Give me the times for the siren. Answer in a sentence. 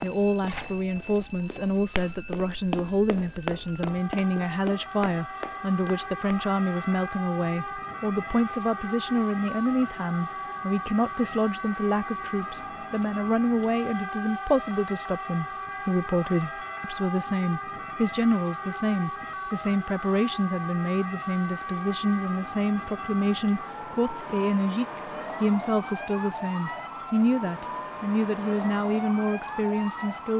The siren can be heard from 0.0 to 30.3 s.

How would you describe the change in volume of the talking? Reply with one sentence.
The volume of the talking stays about the same.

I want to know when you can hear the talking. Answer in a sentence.
The talking can be heard from 0.0 to 30.3 s.